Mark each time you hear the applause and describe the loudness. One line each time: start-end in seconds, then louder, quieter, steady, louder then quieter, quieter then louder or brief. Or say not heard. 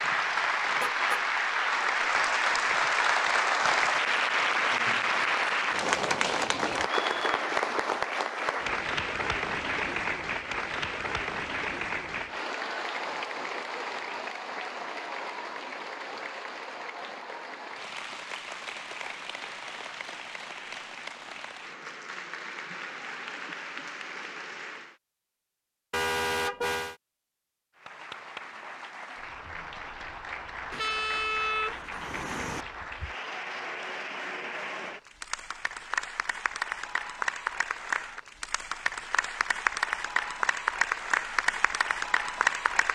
0.0-24.9 quieter
27.8-42.9 louder.